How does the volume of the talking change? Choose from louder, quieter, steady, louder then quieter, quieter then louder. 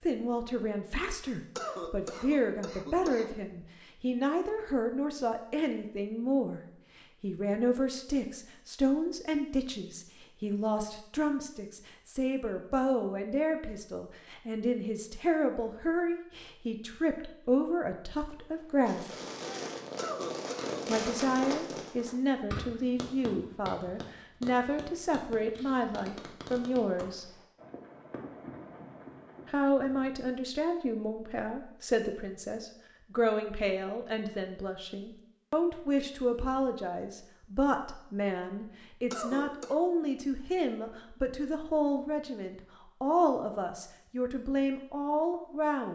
steady.